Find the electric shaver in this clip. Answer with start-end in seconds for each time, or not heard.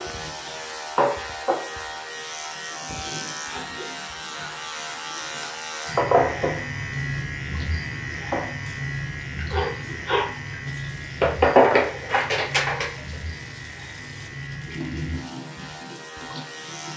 0.0-16.9.